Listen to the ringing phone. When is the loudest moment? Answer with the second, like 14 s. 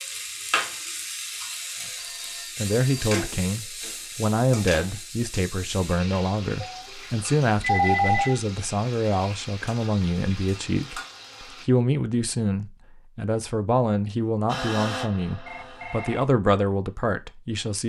8 s.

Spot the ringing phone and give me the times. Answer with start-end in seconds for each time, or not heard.
1.9-3.1, 6.6-8.3, 15.4-16.3.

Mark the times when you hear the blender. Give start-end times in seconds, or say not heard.
14.4-16.2.